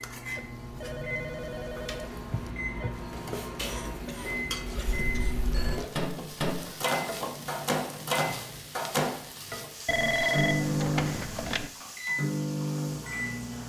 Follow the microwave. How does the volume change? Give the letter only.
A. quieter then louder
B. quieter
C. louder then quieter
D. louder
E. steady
D.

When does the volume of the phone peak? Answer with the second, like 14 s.
10 s.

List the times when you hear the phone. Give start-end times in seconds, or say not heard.
0.3-2.9, 5.0-5.8, 9.8-11.7.